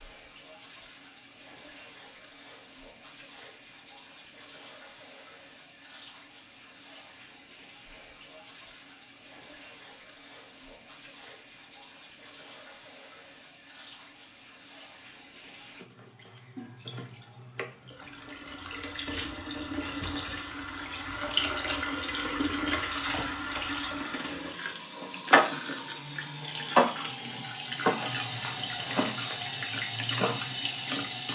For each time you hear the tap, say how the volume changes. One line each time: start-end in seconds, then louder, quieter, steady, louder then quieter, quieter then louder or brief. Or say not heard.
0.0-31.2 louder.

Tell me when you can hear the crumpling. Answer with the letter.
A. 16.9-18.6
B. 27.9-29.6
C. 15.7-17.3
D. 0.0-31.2
B.